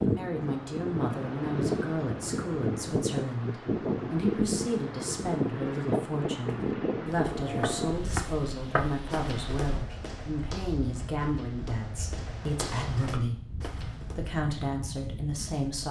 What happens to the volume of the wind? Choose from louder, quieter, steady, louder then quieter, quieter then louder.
quieter.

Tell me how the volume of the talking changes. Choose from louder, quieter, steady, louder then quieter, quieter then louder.
steady.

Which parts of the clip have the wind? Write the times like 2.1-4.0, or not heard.
0.0-15.7.